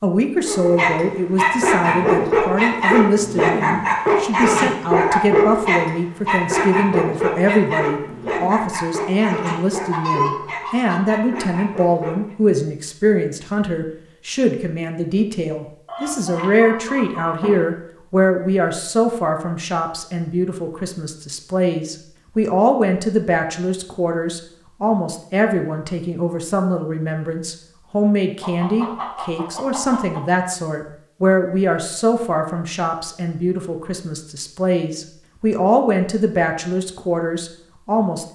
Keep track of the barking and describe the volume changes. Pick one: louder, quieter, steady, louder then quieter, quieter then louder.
quieter.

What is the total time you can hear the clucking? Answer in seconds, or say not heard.
5 s.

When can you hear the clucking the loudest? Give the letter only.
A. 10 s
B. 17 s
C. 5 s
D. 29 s
A.